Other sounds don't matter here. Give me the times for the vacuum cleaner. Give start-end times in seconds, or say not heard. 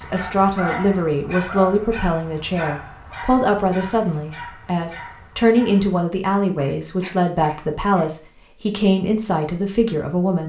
not heard.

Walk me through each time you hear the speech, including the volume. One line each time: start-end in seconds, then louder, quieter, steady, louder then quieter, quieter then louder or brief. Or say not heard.
0.0-10.4 steady.